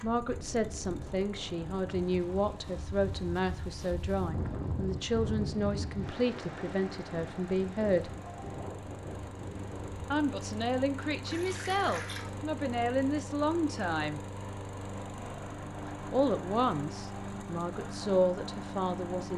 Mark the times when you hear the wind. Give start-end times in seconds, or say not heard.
0.0-10.2.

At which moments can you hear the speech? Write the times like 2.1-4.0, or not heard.
0.0-8.2, 10.1-14.2, 16.1-19.3.